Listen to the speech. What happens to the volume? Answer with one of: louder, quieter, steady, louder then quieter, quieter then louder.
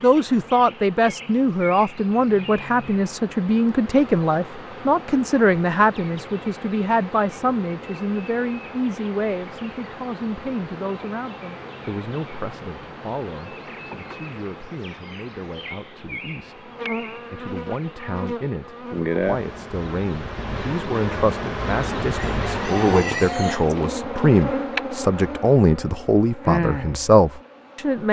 quieter then louder.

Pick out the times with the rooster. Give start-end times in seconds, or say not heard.
22.1-23.8.